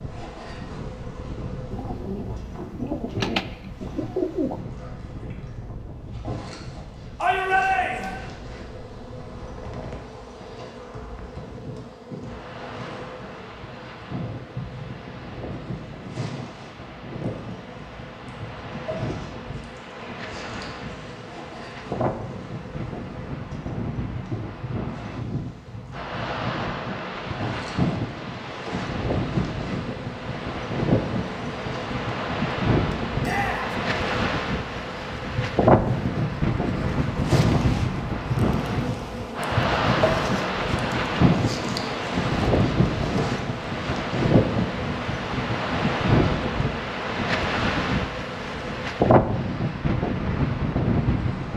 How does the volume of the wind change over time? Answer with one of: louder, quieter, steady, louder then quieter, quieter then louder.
louder.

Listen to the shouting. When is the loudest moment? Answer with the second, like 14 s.
8 s.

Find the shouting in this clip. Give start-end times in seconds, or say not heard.
7.2-8.2, 33.2-33.8.